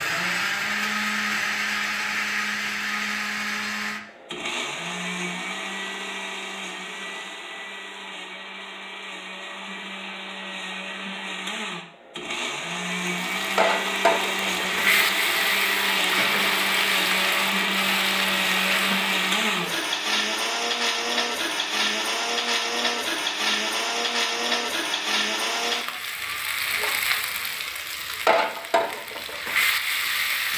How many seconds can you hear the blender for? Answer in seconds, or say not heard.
26 s.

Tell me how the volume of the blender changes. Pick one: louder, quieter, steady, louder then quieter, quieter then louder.
quieter then louder.